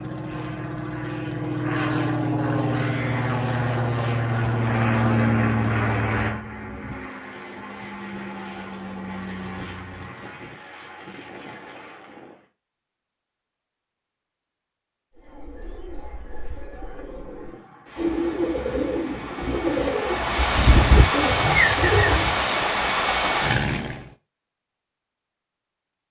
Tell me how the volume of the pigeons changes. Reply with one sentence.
The loudness of the pigeons goes up.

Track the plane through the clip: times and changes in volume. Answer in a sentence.
The plane can be heard from 0.0 to 12.4 s, getting quieter; and from 16.6 to 24.1 s, getting louder.